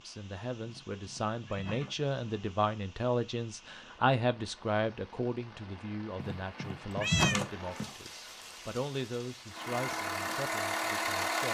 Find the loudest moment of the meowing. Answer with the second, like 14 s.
7 s.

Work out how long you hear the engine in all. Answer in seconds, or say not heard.
2 s.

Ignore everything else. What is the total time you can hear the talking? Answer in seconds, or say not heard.
11 s.